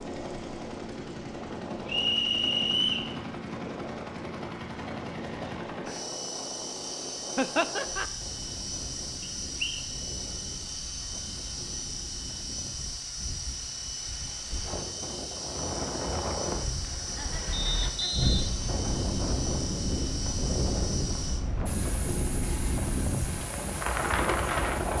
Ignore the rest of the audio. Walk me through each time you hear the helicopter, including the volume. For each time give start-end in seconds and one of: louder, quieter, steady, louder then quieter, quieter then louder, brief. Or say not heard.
0.0-24.9 steady.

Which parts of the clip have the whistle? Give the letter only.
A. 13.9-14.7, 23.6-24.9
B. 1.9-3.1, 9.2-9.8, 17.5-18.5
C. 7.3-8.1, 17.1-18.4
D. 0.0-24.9
B.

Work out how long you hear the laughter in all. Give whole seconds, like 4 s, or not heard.
2 s.